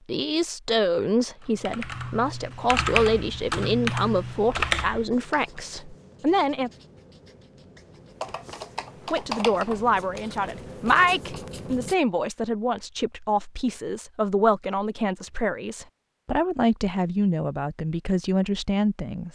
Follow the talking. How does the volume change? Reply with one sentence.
The loudness of the talking stays about the same.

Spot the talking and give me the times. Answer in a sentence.
You can hear the talking from 0.1 to 6.7 s and from 9.1 to 19.3 s.